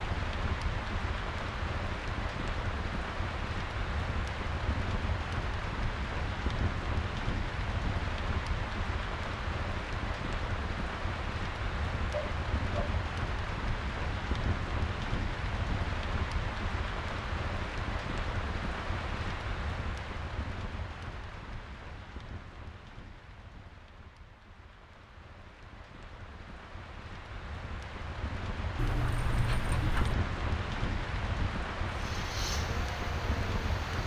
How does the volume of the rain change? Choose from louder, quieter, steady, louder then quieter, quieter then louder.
quieter then louder.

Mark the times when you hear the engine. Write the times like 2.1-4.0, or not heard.
31.9-34.0.